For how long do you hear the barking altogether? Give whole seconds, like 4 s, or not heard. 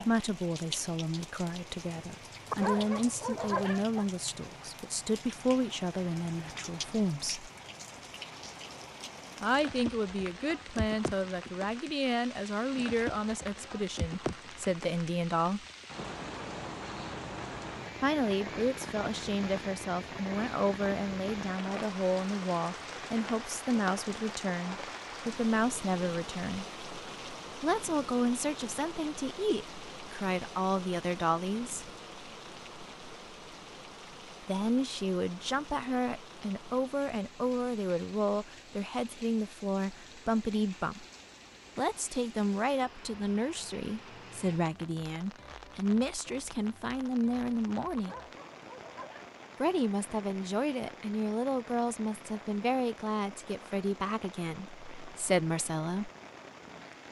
3 s.